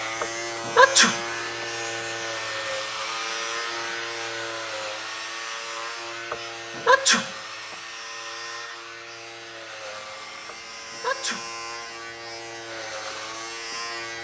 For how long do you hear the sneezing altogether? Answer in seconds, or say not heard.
3 s.